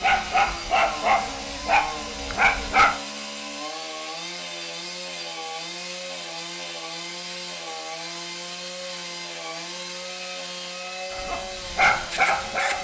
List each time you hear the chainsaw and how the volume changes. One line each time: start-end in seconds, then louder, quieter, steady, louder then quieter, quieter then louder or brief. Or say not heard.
0.0-12.8 steady.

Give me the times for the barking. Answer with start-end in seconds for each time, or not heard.
0.0-3.0, 11.1-12.8.